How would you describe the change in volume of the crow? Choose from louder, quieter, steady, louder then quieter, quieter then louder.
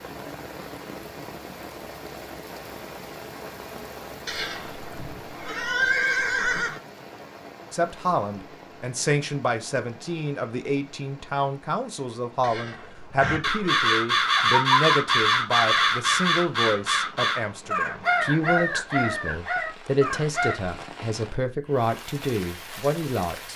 quieter.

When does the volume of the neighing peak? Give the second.
6 s.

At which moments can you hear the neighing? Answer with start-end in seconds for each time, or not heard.
4.2-6.8, 12.4-13.8.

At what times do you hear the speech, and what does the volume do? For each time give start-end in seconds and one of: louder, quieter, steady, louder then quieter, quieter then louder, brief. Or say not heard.
7.7-23.5 steady.